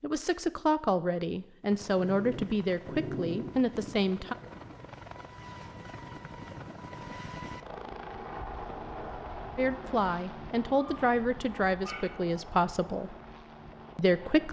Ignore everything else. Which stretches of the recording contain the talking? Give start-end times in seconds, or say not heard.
0.0-4.3, 9.6-13.2, 13.9-14.4.